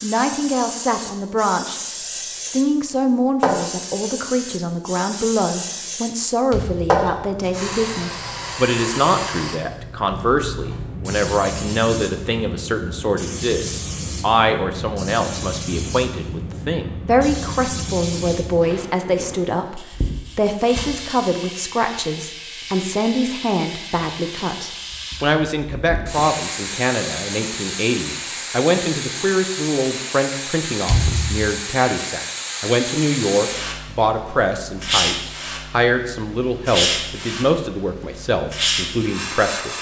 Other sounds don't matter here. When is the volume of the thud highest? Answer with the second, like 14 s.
31 s.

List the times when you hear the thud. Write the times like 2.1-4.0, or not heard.
6.5-7.0, 30.9-31.4.